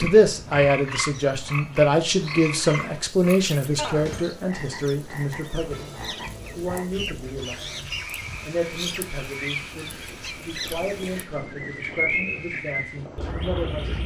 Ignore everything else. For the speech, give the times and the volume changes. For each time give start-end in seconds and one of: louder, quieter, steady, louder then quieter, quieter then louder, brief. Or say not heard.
0.0-14.0 quieter.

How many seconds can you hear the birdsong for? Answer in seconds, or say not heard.
14 s.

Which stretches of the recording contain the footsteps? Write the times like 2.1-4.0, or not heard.
not heard.